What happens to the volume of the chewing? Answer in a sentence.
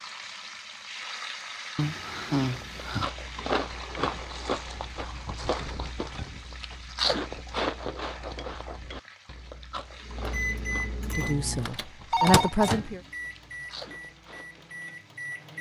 The volume of the chewing goes down.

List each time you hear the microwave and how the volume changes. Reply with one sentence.
The microwave can be heard from 10.0 to 15.5 s, getting quieter.